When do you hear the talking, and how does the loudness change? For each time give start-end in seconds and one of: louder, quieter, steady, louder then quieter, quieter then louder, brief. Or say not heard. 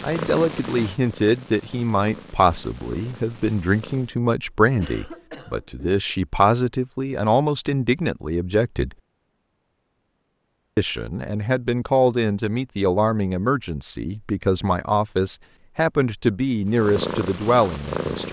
0.0-8.9 steady
10.8-18.2 steady.